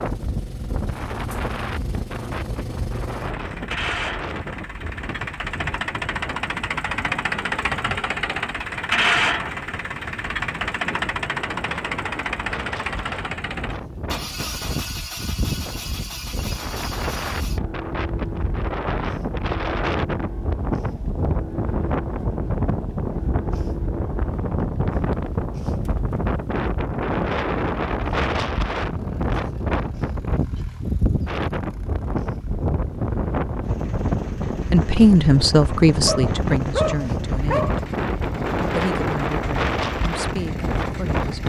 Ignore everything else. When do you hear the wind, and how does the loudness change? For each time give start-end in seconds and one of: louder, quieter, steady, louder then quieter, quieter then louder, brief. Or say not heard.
0.0-41.4 louder.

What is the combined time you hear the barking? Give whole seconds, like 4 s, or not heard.
2 s.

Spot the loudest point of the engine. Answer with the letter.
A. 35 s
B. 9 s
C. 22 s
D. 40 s
B.